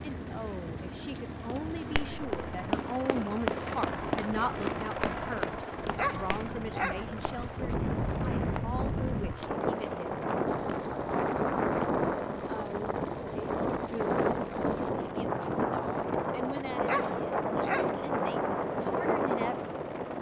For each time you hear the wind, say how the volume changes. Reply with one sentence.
The wind can be heard from 0.0 to 20.1 s, getting louder.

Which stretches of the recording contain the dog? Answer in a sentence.
You can hear the dog from 6.0 to 7.1 s and from 16.9 to 18.0 s.